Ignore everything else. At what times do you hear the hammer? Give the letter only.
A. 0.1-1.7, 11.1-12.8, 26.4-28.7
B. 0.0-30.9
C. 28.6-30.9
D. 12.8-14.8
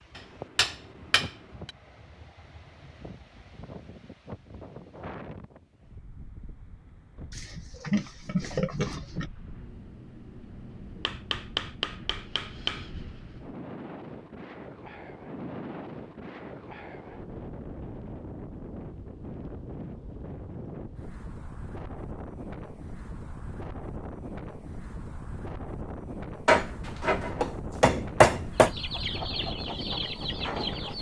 A.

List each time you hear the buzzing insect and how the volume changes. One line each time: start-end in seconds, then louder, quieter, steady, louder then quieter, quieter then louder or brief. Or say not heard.
not heard.